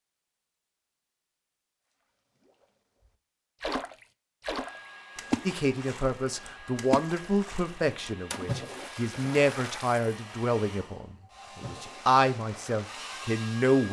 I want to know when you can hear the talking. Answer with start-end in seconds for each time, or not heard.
5.5-13.8.